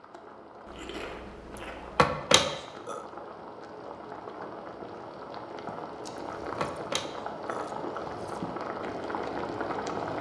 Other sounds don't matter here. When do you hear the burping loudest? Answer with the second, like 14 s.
2 s.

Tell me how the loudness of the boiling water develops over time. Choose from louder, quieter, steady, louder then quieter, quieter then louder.
louder.